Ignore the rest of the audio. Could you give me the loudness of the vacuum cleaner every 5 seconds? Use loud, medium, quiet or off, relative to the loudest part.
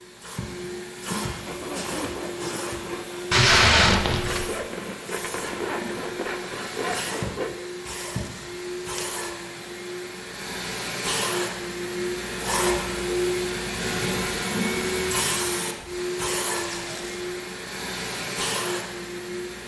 medium, medium, loud, loud.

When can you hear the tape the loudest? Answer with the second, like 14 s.
4 s.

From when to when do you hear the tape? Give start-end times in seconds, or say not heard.
3.3-4.5, 8.1-9.1, 16.6-17.2.